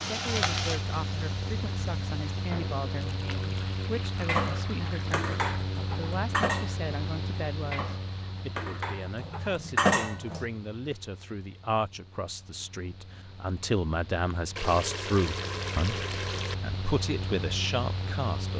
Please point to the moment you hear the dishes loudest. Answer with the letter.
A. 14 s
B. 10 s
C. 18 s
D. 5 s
B.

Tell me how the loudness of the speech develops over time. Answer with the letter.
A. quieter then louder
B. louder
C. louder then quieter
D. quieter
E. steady
B.